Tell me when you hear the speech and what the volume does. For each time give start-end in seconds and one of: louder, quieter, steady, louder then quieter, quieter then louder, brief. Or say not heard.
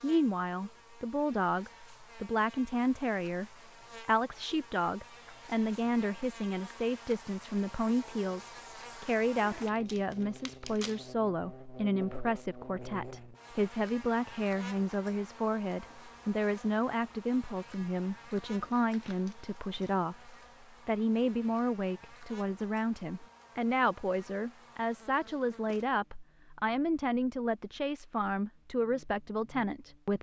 0.0-30.1 steady.